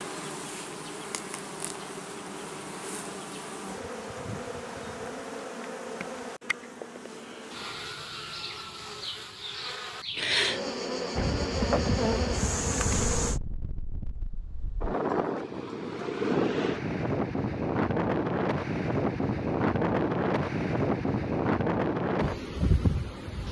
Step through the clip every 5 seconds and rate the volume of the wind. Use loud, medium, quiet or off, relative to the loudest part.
off, off, medium, loud, loud.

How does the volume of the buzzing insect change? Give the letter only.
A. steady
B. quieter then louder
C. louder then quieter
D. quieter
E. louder
E.